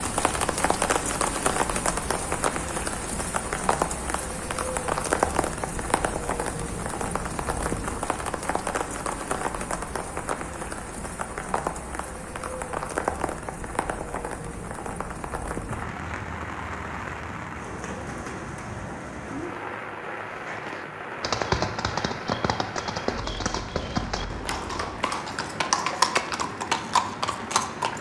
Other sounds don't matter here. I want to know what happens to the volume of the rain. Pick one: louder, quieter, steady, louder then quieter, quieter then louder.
quieter.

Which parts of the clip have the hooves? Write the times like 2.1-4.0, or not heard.
20.4-27.9.